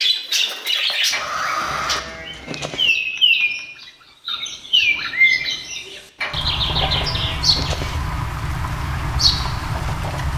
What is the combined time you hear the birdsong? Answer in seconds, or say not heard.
10 s.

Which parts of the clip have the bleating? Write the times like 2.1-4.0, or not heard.
1.1-2.9, 6.2-8.0.